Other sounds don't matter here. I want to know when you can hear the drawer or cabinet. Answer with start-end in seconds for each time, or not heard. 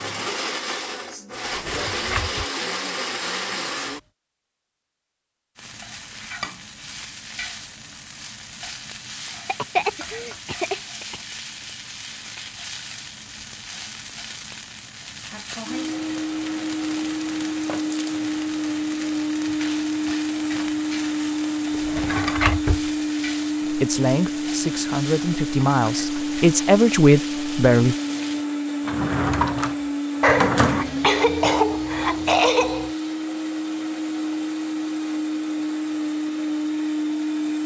1.4-2.5, 21.7-22.9, 28.9-30.9.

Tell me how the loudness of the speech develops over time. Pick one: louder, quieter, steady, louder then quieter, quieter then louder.
louder.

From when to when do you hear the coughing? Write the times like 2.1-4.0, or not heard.
9.4-11.2, 30.2-32.9.